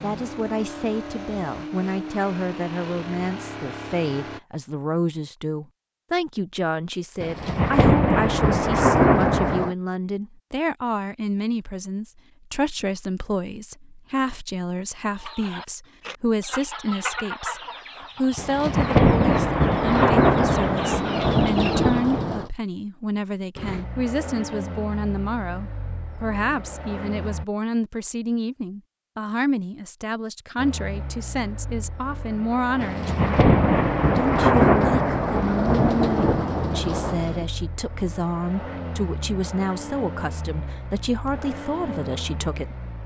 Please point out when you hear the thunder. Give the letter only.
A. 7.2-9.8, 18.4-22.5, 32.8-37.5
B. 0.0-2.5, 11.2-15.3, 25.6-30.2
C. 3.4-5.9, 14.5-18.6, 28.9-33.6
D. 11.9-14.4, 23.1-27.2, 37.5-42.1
A.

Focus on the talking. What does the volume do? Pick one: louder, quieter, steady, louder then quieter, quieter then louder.
steady.